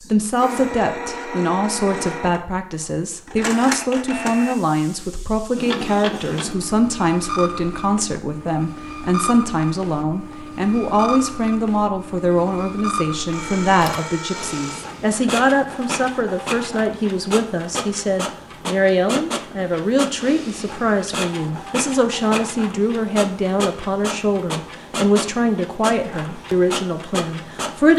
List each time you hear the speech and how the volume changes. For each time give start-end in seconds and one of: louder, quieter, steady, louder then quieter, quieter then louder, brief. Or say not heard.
0.1-27.9 steady.